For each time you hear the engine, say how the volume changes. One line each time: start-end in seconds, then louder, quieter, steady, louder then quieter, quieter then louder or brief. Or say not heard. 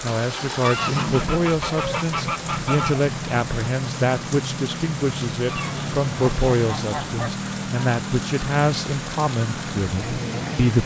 0.0-10.8 steady.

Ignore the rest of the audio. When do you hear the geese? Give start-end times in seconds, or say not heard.
0.6-3.0, 5.5-7.3.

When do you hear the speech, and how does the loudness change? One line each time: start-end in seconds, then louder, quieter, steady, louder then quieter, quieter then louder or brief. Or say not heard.
0.0-10.8 steady.